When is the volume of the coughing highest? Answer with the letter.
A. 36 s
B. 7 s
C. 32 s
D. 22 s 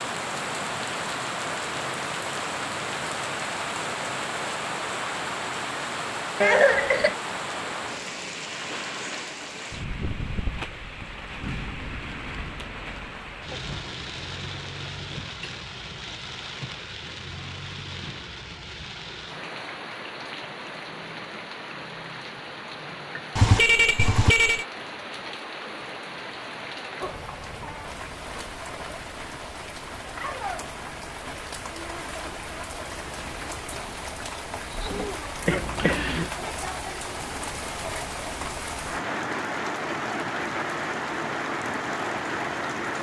B.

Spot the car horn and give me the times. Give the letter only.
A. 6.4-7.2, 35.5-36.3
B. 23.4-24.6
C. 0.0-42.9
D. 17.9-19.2
B.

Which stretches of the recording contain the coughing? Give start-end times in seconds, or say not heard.
6.4-7.2, 35.5-36.3.